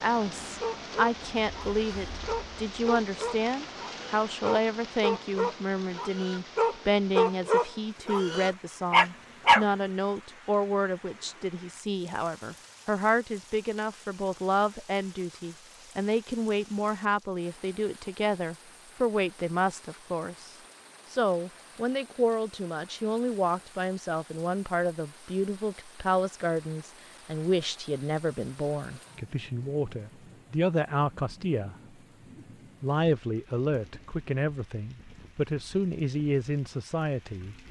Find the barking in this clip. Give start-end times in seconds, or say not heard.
0.6-9.7.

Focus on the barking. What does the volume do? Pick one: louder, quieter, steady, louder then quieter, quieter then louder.
louder.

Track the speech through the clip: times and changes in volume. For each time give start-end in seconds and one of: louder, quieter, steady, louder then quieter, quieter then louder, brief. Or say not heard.
0.0-31.8 steady
32.4-37.5 quieter then louder.